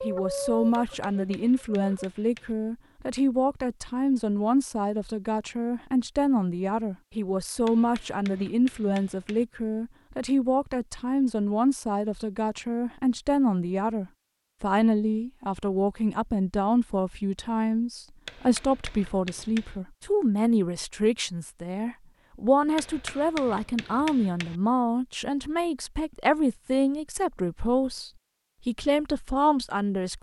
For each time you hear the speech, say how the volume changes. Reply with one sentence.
You can hear the speech from 0.0 to 30.1 s, at a steady volume.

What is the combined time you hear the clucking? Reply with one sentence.
You can hear the clucking for 2 seconds altogether.